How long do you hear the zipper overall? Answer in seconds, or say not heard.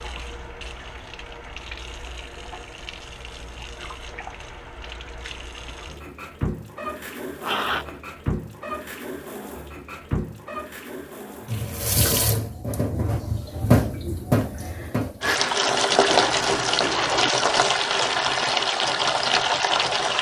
2 s.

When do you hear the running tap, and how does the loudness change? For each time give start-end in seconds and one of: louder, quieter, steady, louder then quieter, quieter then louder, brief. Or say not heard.
0.0-20.1 louder.